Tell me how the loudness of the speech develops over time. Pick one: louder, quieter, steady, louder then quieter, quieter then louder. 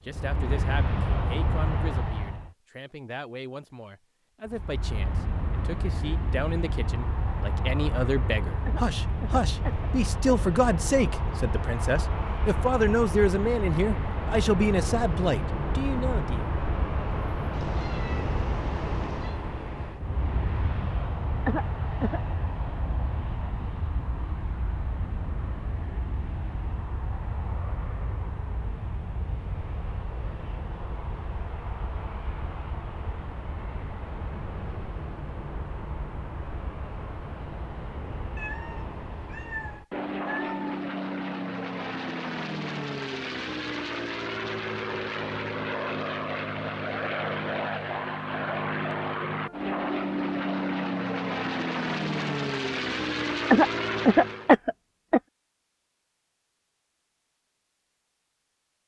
louder.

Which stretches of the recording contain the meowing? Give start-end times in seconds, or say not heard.
17.5-19.4, 38.4-40.8.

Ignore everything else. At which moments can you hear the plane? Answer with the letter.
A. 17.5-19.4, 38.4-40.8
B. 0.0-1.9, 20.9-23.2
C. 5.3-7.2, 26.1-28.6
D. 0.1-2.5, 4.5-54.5
D.